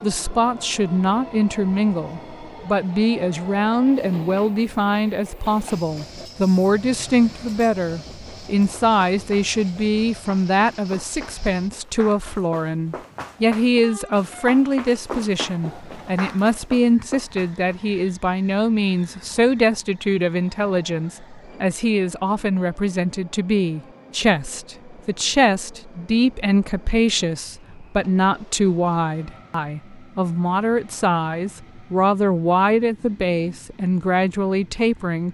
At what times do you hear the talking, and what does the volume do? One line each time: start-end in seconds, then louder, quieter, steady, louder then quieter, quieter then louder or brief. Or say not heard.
0.0-35.2 steady.